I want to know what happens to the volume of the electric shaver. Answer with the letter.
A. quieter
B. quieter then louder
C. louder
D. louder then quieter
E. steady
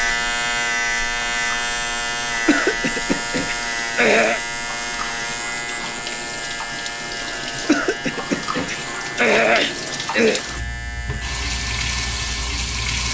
A.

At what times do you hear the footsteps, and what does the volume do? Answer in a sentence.
The footsteps can't be heard in this clip.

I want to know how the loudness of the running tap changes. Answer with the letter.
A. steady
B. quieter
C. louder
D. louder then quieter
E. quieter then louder
C.